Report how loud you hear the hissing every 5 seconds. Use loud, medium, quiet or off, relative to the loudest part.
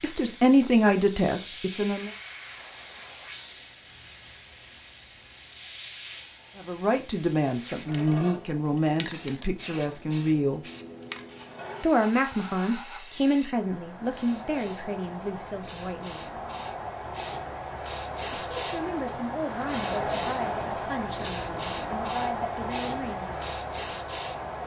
medium, medium, medium, loud, loud.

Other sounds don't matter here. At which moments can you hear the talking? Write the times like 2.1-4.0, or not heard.
0.0-2.1, 6.5-10.6, 11.8-16.4, 18.6-23.6.